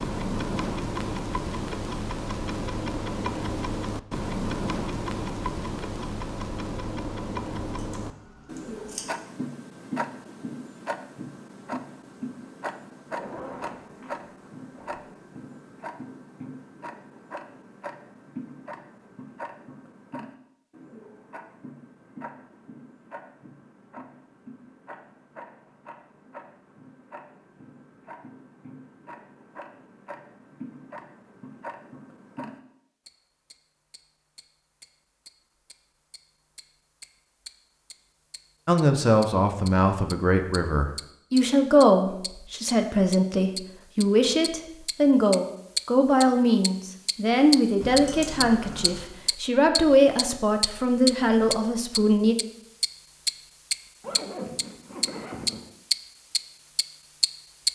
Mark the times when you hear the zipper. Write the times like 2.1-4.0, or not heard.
13.1-15.0, 54.0-55.7.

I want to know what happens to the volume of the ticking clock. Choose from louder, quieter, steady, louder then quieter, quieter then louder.
quieter then louder.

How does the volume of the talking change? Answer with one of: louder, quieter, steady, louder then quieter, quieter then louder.
steady.